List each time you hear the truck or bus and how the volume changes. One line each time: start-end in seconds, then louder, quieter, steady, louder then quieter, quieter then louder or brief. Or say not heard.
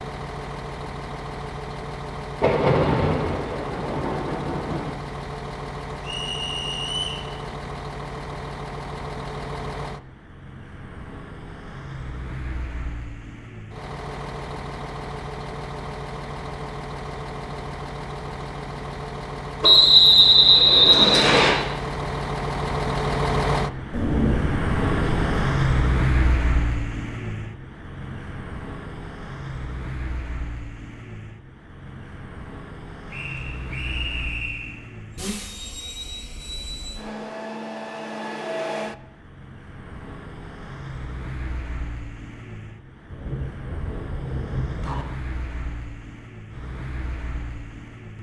0.0-48.1 louder then quieter.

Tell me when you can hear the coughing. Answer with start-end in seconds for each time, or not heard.
not heard.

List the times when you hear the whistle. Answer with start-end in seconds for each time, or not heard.
6.0-7.2, 19.6-21.6, 33.1-34.8.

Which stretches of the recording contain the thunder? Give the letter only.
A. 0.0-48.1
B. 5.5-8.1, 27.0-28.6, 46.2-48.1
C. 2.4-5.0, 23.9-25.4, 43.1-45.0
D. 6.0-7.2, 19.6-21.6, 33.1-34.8
C.